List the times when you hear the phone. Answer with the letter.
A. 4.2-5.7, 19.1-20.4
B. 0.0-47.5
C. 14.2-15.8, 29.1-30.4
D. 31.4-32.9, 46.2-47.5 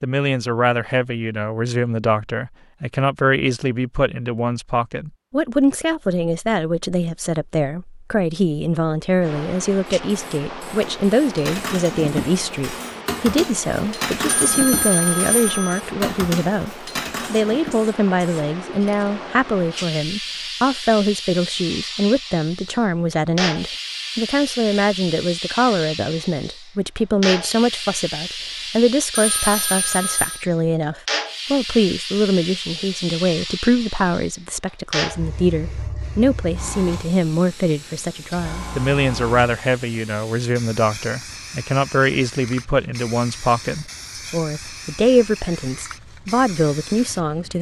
C.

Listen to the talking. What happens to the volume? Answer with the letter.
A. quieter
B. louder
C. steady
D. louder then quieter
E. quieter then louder
C.